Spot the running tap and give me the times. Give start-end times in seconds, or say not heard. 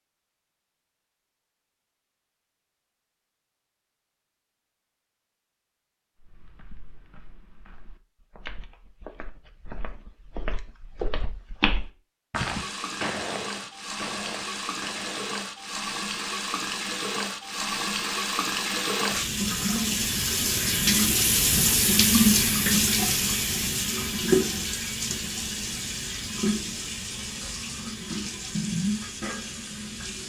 12.3-30.2.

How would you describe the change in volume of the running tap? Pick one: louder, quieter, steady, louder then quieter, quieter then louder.
louder then quieter.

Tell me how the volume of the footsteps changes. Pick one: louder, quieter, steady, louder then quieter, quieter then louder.
louder then quieter.